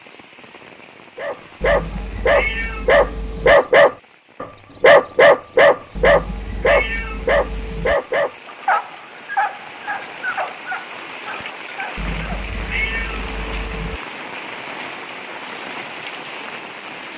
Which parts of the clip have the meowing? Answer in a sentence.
The meowing can be heard from 1.6 to 3.6 s, from 6.0 to 8.0 s and from 11.9 to 14.0 s.